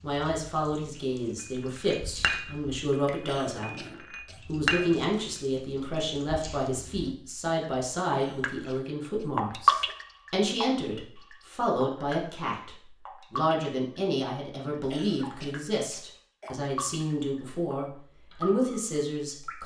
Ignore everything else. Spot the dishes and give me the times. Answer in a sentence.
You can hear the dishes from 1.4 to 5.0 s.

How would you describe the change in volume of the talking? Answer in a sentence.
The loudness of the talking stays about the same.